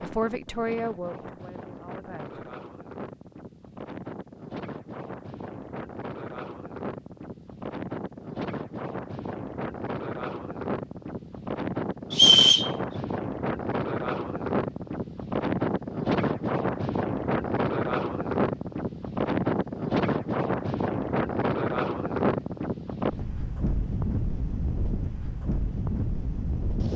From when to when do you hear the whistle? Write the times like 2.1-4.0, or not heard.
12.1-12.7.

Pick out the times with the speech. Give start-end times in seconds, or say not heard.
0.0-2.4.